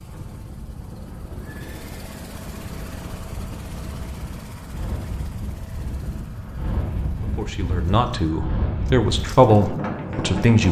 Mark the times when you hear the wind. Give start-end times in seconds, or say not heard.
0.0-10.6.